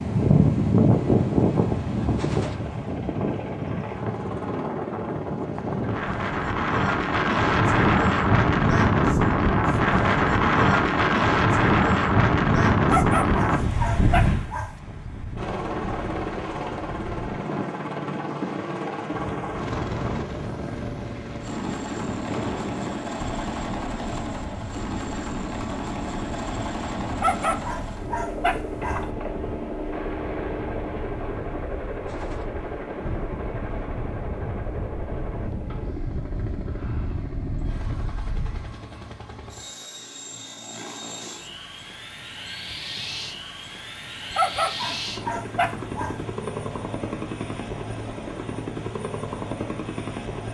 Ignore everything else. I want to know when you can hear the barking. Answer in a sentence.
You can hear the barking from 12.8 to 14.8 s, from 27.1 to 29.1 s and from 44.3 to 46.2 s.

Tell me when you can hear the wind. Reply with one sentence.
You can hear the wind from 0.0 to 38.8 s.